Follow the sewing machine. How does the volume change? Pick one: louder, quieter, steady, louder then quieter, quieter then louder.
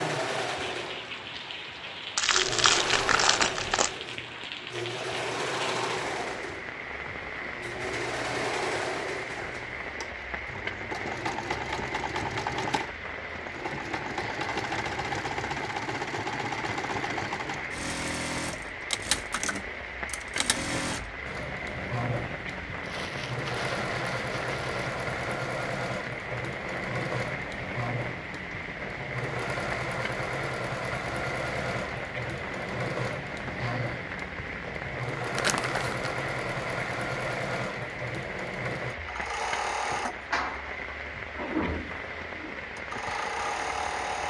steady.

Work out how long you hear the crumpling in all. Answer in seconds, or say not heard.
5 s.